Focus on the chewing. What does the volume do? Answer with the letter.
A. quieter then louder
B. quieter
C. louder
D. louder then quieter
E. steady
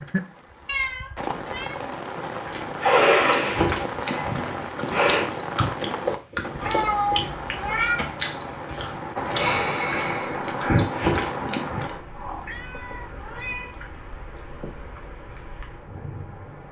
E.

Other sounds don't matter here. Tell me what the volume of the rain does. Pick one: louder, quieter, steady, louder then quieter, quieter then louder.
quieter.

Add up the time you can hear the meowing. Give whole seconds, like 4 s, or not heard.
4 s.